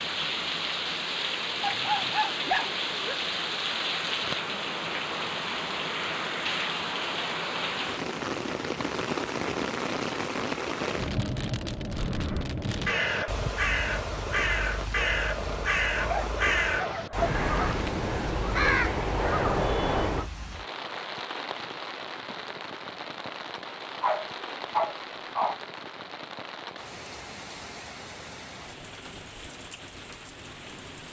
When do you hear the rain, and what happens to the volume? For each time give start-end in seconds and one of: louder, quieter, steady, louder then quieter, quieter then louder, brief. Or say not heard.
0.0-31.0 quieter.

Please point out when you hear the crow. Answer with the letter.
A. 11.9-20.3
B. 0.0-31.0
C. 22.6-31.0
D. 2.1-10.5
A.